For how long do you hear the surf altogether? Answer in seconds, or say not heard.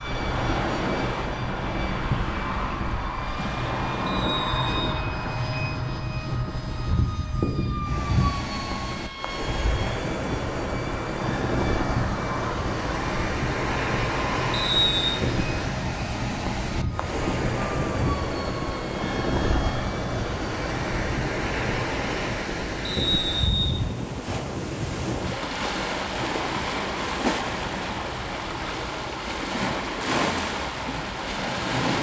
32 s.